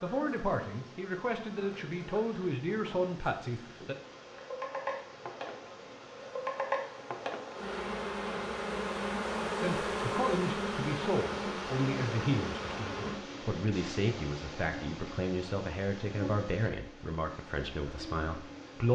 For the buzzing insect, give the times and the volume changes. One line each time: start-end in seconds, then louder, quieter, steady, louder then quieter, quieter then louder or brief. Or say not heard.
0.0-18.8 louder then quieter.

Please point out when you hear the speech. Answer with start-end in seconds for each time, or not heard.
0.0-4.0, 9.6-18.8.